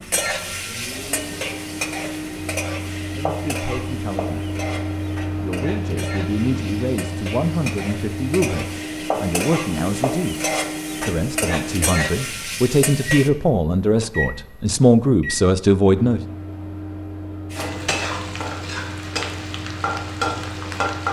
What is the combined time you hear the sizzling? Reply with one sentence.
The sizzling can be heard for 17 seconds in total.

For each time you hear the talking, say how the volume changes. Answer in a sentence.
The talking can be heard briefly from 3.1 to 4.5 s; and from 5.3 to 16.2 s, getting louder.